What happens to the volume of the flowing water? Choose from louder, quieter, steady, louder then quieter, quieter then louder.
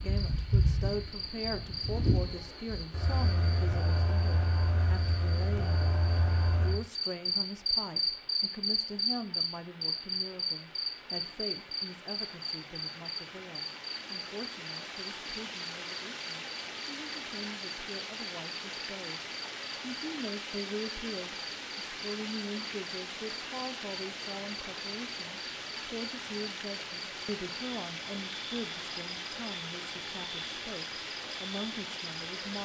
louder.